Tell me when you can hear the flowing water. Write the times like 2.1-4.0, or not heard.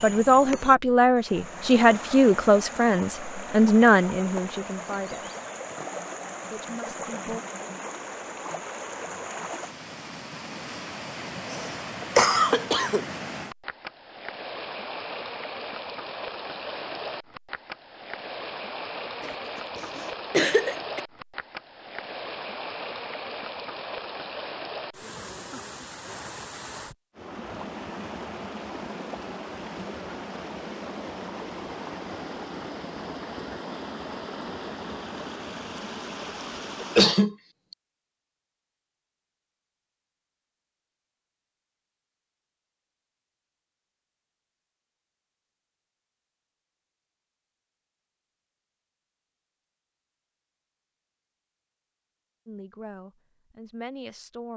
0.0-37.0.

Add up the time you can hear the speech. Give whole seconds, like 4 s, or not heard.
8 s.